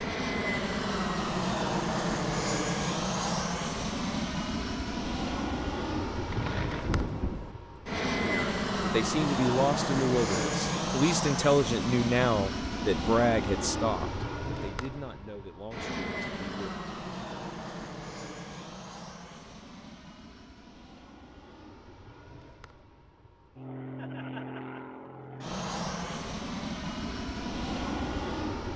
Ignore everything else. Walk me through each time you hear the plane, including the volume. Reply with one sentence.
You can hear the plane from 0.0 to 28.7 s, getting quieter then louder.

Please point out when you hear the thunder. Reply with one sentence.
You can hear the thunder from 6.1 to 7.5 s.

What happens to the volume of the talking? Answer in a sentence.
The loudness of the talking goes down.